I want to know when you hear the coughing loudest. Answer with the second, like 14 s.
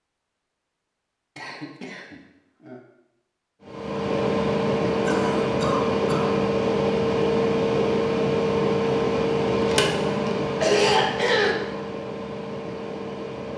11 s.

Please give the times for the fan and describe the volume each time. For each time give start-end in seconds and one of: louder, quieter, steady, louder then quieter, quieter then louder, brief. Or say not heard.
3.6-13.5 quieter.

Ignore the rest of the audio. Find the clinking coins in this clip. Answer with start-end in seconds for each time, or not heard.
not heard.